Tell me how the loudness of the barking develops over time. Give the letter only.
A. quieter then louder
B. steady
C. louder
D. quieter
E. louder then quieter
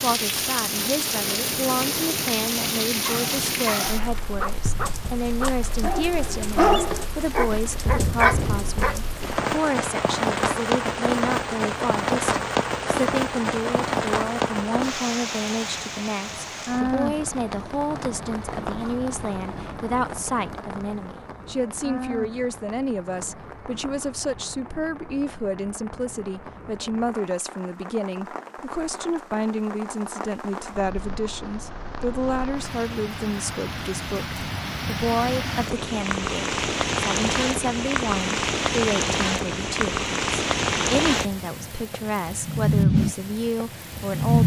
C.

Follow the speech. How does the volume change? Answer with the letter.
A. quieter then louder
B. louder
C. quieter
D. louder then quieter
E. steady
E.